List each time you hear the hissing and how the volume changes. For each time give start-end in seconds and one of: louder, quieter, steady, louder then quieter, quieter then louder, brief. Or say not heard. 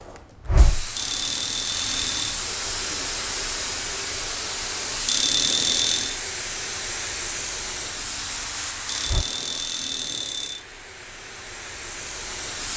0.0-12.7 quieter.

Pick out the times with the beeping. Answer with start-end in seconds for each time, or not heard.
0.9-2.4, 5.0-6.2, 8.8-10.7.